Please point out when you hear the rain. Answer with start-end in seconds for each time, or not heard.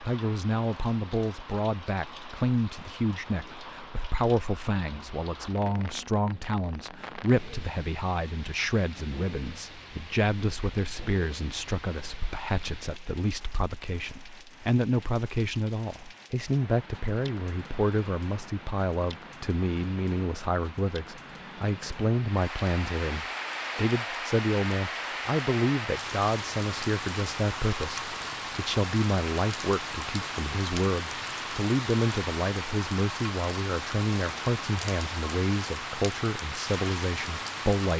0.0-37.9.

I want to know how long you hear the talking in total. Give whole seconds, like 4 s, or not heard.
38 s.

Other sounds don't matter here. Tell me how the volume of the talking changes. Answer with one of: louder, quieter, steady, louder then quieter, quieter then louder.
steady.